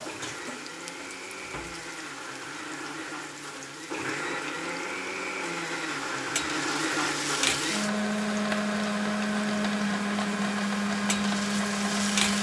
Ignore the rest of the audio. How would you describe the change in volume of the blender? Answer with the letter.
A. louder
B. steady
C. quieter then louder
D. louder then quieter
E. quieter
A.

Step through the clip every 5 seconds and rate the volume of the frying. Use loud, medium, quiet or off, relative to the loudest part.
medium, loud, loud.